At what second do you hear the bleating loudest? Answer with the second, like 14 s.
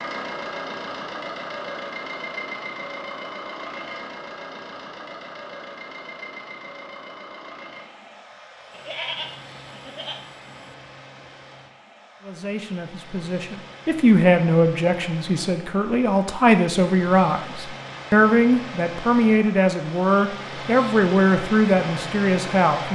9 s.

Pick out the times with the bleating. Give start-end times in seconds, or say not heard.
8.7-10.7.